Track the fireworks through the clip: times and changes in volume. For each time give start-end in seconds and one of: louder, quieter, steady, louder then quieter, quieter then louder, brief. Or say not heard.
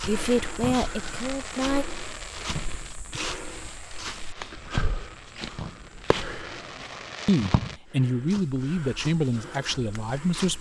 0.1-7.8 quieter then louder.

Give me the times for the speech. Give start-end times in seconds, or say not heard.
0.0-1.9, 7.2-10.5.